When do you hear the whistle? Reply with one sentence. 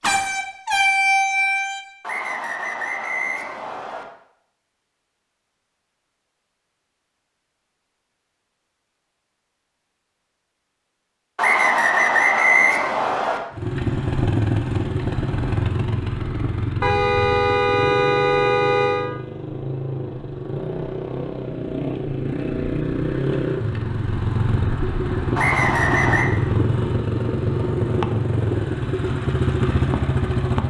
The whistle can be heard from 2.0 to 4.0 s, from 11.3 to 13.4 s and from 25.4 to 26.2 s.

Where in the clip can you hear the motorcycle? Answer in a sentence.
You can hear the motorcycle from 13.5 to 30.6 s.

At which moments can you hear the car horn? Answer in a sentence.
You can hear the car horn from 0.0 to 1.8 s and from 16.8 to 19.1 s.